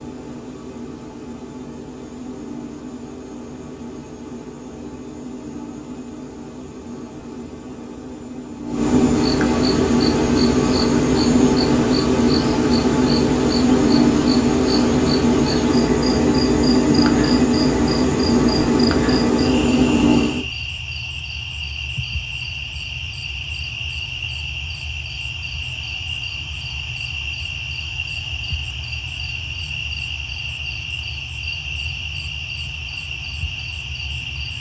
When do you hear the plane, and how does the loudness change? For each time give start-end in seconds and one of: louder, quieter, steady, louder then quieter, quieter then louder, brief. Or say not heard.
0.0-20.4 louder.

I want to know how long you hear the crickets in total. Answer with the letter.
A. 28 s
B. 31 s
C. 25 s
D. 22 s
C.